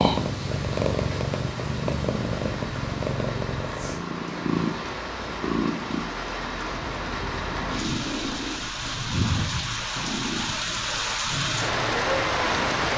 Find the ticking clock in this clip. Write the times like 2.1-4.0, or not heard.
not heard.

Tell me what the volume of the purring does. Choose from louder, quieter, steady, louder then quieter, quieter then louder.
quieter.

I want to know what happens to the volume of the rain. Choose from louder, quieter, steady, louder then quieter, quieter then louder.
louder.